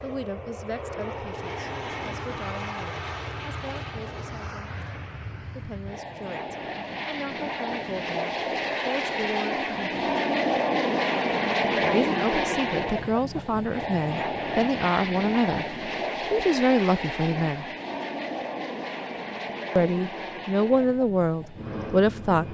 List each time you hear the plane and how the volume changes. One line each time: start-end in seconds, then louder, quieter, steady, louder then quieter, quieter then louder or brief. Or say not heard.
0.0-22.4 louder then quieter.